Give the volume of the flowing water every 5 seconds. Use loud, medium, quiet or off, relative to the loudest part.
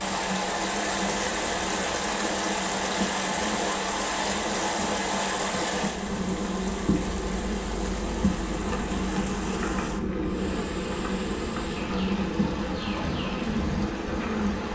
loud, medium, medium.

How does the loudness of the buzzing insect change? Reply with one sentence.
The volume of the buzzing insect goes up.